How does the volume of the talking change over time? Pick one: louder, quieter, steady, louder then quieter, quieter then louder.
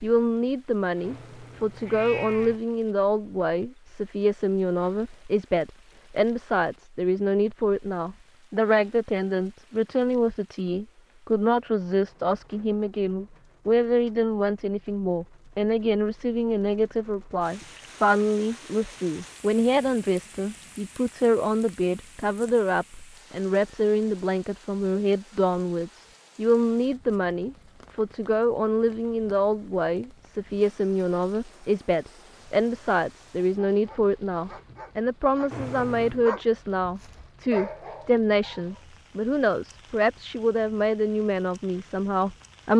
steady.